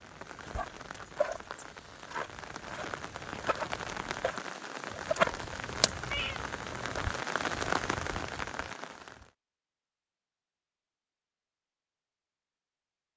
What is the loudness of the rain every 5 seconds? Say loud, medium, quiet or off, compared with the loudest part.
medium, loud, off.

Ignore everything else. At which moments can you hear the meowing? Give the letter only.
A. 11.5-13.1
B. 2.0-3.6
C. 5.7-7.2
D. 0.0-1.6
C.